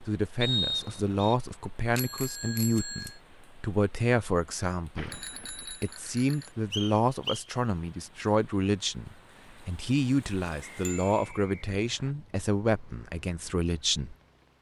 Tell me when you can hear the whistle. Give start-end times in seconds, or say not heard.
0.4-1.4, 6.7-7.5, 10.6-12.2.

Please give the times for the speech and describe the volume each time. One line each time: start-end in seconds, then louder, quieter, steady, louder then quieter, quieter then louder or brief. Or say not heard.
0.0-14.2 steady.